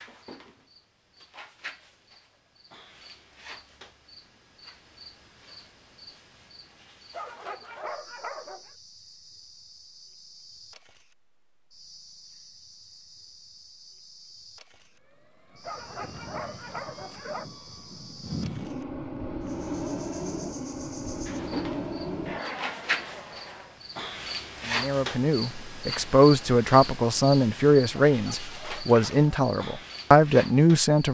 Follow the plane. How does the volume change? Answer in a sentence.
The volume of the plane goes up.